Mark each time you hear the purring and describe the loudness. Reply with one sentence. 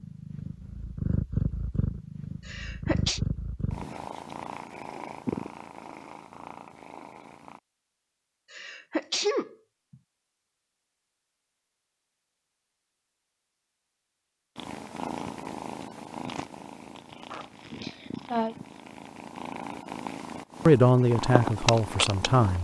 The purring can be heard from 0.0 to 7.6 s, getting quieter; and from 14.6 to 22.5 s, getting quieter then louder.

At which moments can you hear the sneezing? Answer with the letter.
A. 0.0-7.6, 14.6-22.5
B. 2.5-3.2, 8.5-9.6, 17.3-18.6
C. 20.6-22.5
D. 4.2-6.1
B.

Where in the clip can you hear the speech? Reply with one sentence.
The speech can be heard from 20.6 to 22.5 s.